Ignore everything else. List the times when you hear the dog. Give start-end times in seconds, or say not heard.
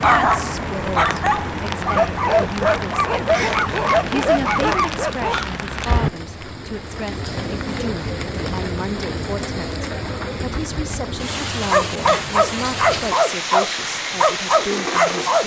0.0-5.5, 11.7-15.4.